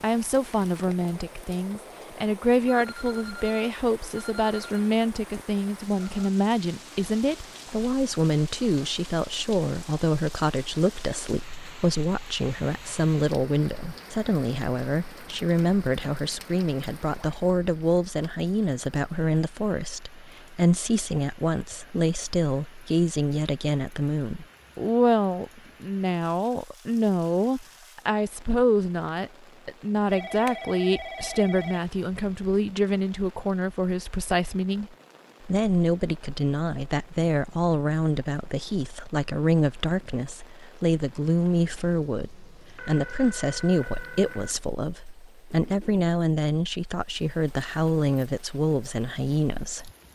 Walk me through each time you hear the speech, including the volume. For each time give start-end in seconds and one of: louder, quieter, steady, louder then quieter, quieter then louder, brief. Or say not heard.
0.0-49.9 steady.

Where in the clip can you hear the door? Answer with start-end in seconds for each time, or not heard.
not heard.